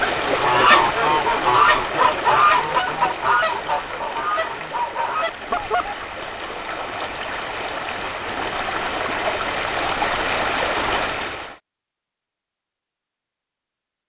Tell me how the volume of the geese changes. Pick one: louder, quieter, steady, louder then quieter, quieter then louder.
quieter.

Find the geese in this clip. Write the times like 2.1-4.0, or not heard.
0.0-6.0.